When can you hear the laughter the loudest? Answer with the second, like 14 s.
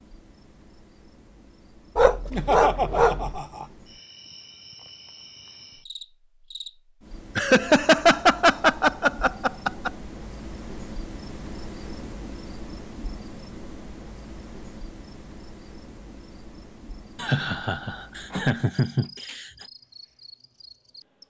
8 s.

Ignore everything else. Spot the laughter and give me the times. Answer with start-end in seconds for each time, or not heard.
2.3-3.6, 7.3-9.9, 17.1-19.5.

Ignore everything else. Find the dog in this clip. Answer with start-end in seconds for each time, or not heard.
1.9-3.4.